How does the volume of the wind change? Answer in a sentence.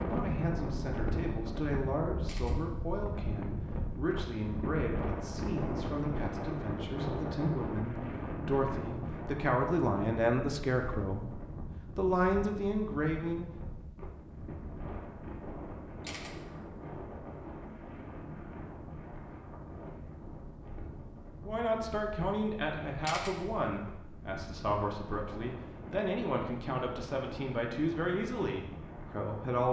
The loudness of the wind goes down.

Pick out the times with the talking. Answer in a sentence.
The talking can be heard from 0.0 to 13.5 s and from 21.4 to 29.6 s.